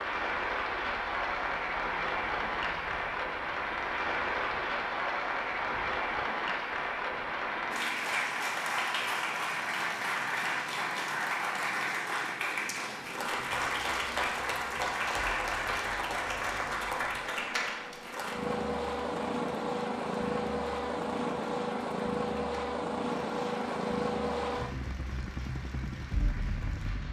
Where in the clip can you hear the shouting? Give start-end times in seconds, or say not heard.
not heard.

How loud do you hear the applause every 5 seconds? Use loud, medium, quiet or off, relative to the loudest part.
loud, loud, loud, loud, quiet, quiet.